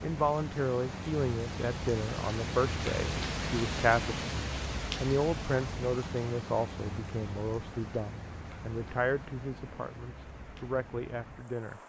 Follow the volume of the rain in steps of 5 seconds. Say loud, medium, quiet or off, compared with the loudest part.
loud, medium, quiet.